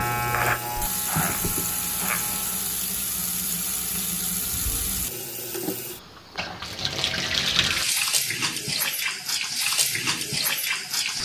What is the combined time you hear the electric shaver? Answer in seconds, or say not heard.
3 s.